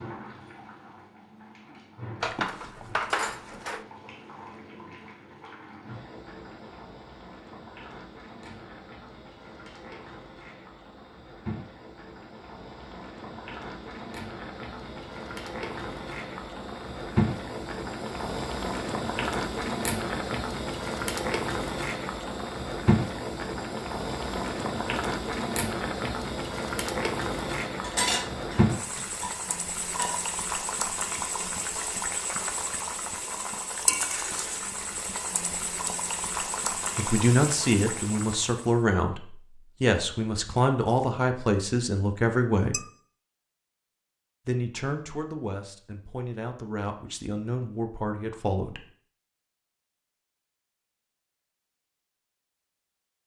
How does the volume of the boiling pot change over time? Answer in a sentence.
The loudness of the boiling pot goes up.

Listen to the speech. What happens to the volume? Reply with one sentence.
The loudness of the speech goes down.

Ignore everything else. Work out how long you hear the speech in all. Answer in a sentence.
You can hear the speech for 10 seconds altogether.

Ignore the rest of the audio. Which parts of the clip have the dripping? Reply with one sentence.
The dripping can't be heard in this clip.